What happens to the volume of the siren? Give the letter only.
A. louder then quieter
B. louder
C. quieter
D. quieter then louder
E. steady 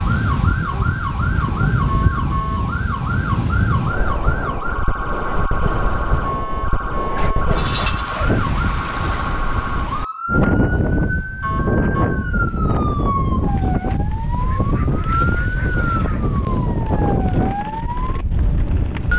E.